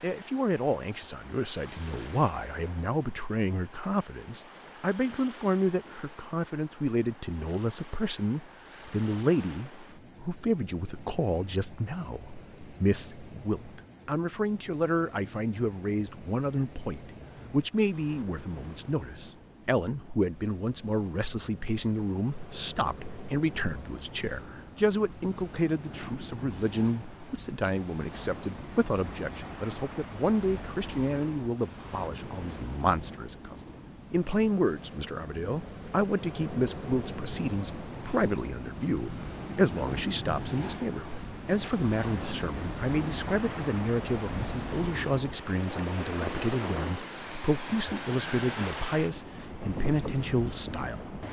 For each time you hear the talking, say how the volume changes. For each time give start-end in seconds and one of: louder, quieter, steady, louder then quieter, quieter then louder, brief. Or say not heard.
0.0-51.2 steady.